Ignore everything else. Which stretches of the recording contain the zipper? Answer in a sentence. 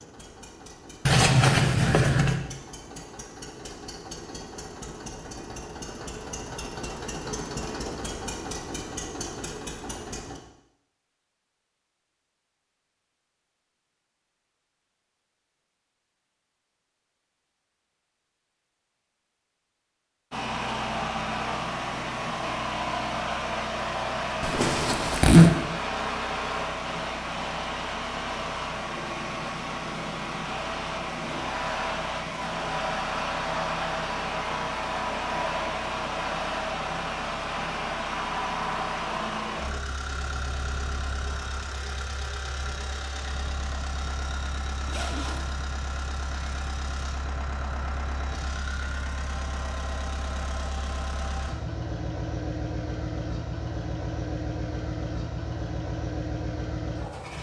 The zipper can be heard from 1.1 to 2.4 s, from 24.4 to 25.6 s and from 44.9 to 45.5 s.